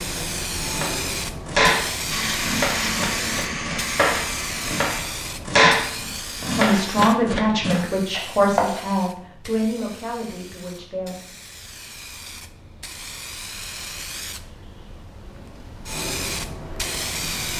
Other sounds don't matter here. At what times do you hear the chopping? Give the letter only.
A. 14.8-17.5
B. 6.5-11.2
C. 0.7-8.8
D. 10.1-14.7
C.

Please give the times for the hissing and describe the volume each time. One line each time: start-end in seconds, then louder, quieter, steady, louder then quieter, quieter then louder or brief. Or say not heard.
0.0-17.5 quieter then louder.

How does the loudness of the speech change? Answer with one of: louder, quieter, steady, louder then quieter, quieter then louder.
quieter.